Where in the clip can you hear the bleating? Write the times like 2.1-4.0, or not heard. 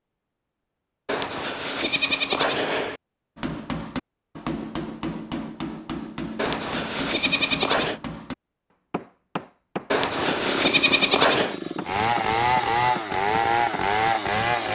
1.1-3.0, 6.3-8.0, 9.9-11.6.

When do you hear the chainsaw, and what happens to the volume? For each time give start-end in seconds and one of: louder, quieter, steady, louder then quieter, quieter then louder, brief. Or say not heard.
10.2-14.6 louder.